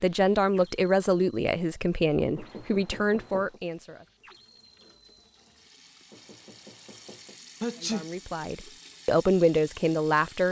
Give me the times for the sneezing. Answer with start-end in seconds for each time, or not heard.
7.6-8.1.